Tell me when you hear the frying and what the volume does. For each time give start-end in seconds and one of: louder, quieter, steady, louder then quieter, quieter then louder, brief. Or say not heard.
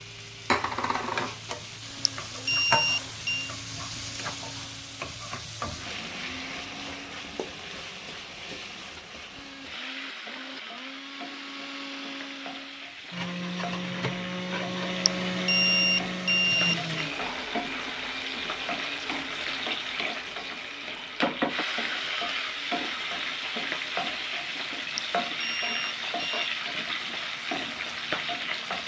0.0-28.8 quieter then louder.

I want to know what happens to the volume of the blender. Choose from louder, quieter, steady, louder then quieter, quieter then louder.
louder then quieter.